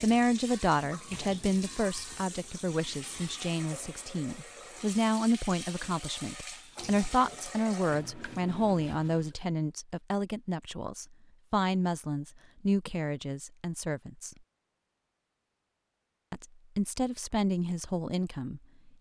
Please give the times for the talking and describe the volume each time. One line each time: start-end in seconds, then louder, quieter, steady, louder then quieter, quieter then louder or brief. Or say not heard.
0.0-14.3 steady
16.3-18.6 brief.